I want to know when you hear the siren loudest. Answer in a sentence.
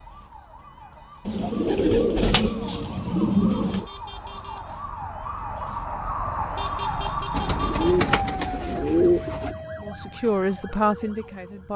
The volume of the siren peaks at 7 seconds.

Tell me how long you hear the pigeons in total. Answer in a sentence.
The pigeons can be heard for 5 seconds in total.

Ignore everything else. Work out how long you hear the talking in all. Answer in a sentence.
You can hear the talking for 2 seconds altogether.